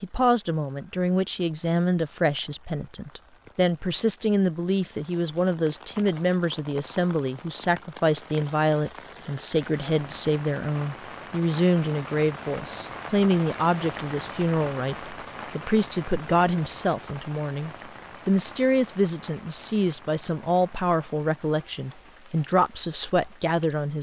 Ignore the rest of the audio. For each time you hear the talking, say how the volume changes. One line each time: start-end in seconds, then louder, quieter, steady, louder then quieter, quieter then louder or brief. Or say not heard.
0.0-23.9 steady.